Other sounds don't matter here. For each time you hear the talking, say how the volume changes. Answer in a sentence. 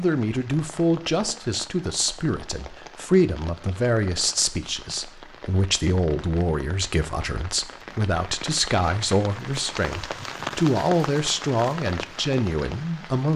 The talking can be heard from 0.0 to 13.3 s, at a steady volume.